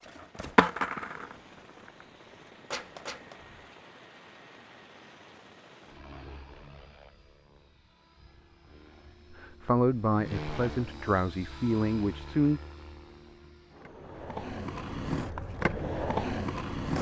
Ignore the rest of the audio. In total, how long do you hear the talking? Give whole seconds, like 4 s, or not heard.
3 s.